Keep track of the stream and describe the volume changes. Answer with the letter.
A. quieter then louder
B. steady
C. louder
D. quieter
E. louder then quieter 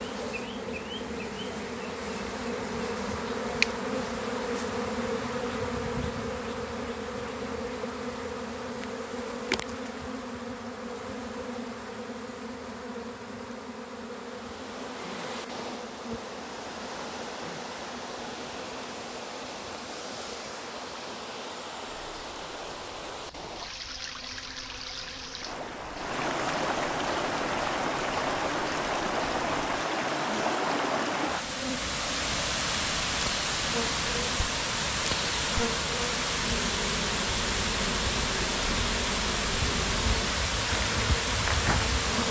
C.